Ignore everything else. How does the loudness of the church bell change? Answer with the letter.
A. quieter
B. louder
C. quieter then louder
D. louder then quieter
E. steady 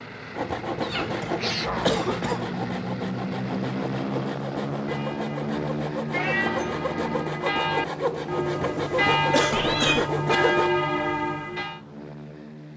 B.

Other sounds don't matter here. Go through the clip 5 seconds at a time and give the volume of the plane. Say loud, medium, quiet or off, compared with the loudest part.
loud, loud, medium.